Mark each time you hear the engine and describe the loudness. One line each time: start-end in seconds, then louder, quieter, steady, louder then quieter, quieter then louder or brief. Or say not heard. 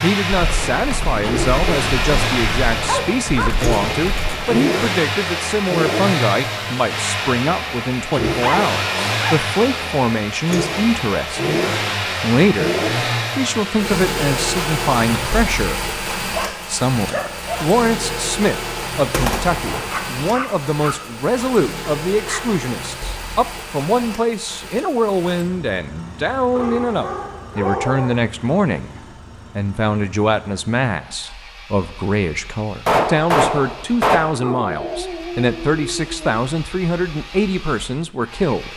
0.0-38.7 quieter.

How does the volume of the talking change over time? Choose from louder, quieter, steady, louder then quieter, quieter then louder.
steady.